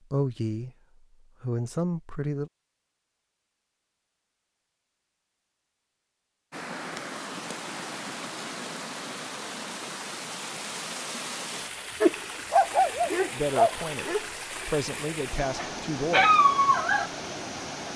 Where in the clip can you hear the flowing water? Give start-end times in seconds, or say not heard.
6.5-17.9.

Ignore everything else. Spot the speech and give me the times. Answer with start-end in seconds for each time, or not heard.
0.1-0.7, 1.4-2.5, 13.3-16.4.